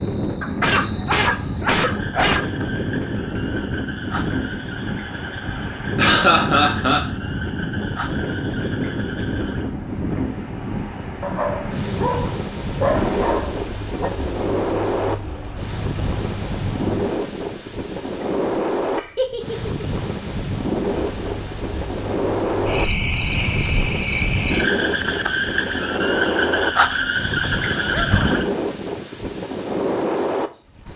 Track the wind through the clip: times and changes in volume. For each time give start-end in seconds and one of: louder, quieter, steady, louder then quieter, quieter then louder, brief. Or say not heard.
0.0-30.9 steady.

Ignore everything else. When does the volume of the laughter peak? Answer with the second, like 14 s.
6 s.